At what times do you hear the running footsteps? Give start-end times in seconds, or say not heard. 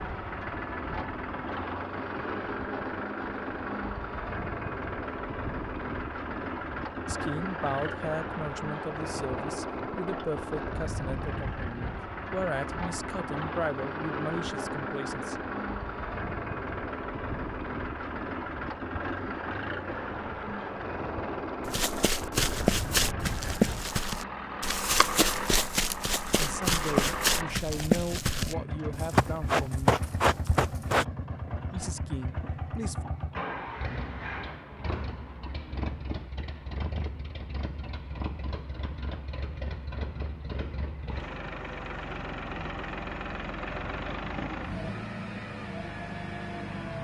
21.6-31.1.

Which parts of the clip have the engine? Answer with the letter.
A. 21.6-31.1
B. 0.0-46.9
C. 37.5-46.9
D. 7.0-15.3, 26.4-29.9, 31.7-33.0
B.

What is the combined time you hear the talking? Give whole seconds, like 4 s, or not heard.
13 s.